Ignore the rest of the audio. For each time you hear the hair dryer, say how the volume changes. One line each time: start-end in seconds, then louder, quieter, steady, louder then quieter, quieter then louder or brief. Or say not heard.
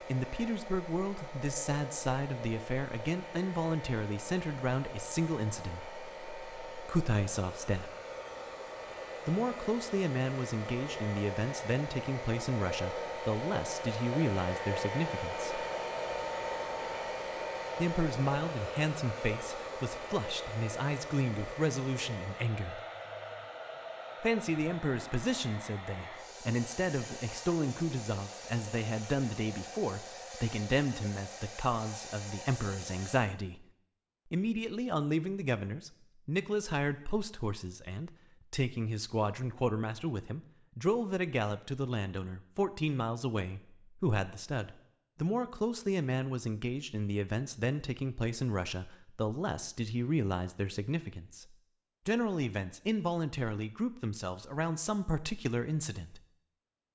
0.0-33.2 louder then quieter.